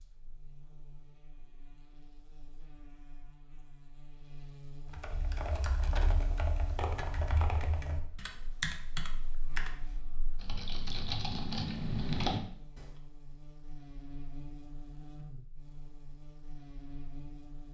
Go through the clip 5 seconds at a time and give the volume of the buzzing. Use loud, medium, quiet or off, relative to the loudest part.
medium, loud, loud, loud.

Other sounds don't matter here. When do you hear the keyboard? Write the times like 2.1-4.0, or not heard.
4.9-12.9.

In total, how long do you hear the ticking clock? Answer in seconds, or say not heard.
not heard.